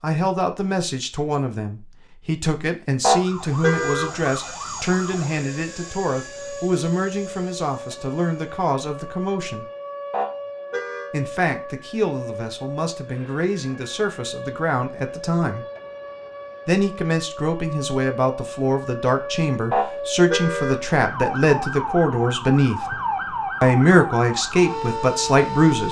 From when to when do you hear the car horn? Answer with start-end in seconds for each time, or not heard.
3.0-4.1, 10.1-11.1, 19.7-20.8.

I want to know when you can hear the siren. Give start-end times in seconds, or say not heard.
3.1-25.8.